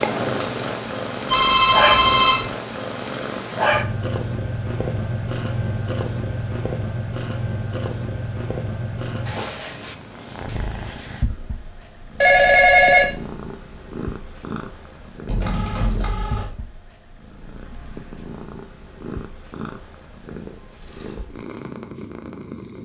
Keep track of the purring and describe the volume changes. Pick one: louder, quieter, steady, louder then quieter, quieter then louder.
quieter.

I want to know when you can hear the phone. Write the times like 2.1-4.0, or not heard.
1.2-2.5, 12.2-13.1, 15.2-16.5.